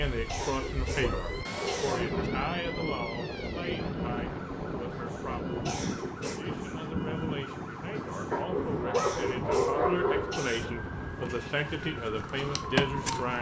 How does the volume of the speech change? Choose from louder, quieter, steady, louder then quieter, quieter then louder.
quieter then louder.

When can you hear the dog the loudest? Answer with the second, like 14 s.
10 s.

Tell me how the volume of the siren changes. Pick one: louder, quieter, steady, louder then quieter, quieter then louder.
louder.